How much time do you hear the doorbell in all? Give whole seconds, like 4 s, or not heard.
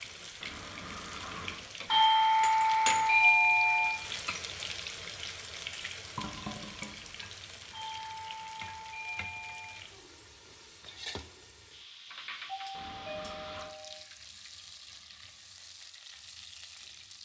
6 s.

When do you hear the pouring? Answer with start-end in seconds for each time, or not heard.
0.4-1.6, 6.2-7.5, 12.7-13.7.